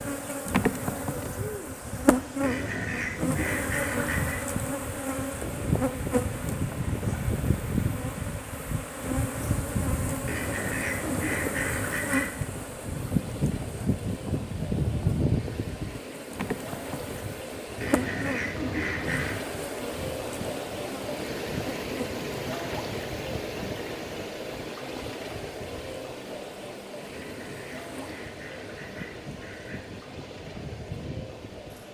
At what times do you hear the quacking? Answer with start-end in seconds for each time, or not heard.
2.4-4.4, 10.2-12.3, 17.8-19.4, 27.1-30.0.